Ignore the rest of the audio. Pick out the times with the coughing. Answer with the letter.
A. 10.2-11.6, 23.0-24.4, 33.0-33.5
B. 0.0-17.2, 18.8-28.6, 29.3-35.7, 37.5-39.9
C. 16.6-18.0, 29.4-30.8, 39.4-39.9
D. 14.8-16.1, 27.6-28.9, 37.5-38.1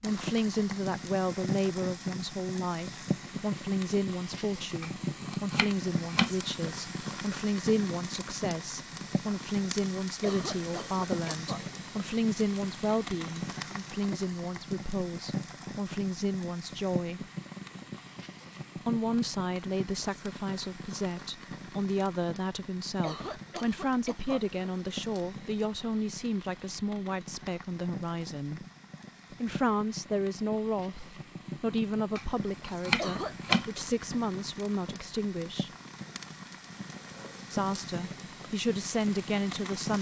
A.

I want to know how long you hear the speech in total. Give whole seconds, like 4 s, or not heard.
36 s.